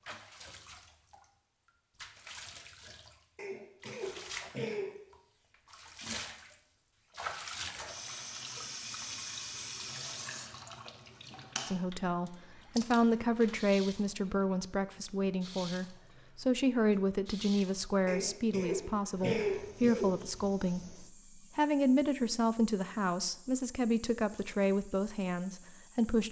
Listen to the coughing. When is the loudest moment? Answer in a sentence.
The loudest moment of the coughing is at 19 seconds.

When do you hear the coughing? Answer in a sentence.
The coughing can be heard from 3.4 to 4.9 s and from 18.1 to 20.1 s.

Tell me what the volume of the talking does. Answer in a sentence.
The loudness of the talking stays about the same.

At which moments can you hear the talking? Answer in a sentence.
The talking can be heard from 11.7 to 26.2 s.